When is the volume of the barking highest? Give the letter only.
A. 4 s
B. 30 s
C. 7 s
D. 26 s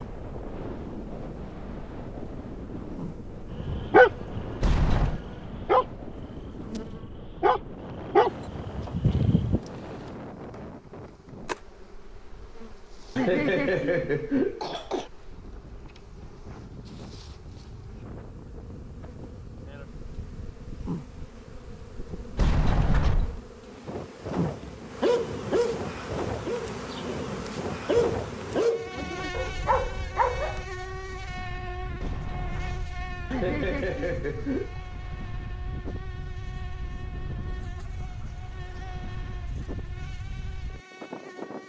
A.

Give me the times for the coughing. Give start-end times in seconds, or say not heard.
13.2-15.1, 33.3-34.8.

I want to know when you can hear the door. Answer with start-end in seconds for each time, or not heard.
4.6-5.2, 22.4-23.4, 31.9-33.0.